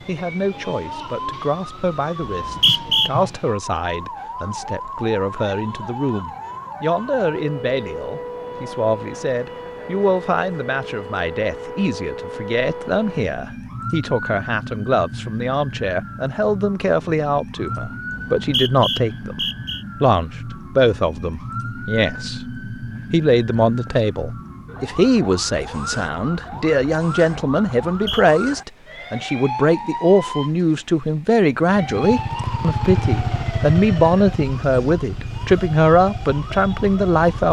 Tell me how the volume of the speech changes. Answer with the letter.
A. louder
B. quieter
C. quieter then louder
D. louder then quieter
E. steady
A.